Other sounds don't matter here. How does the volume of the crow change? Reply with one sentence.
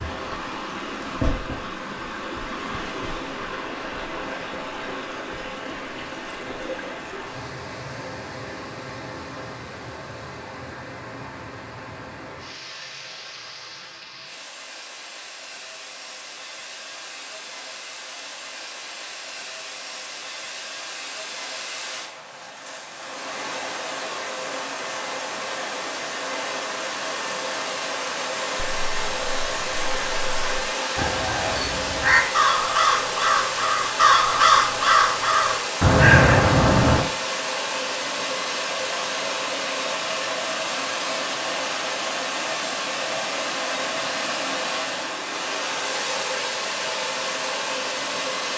The volume of the crow goes up.